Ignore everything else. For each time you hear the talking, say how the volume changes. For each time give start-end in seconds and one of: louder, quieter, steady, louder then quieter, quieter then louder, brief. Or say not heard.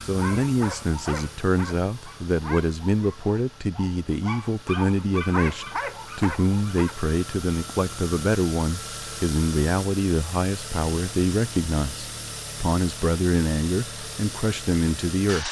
0.1-15.4 steady.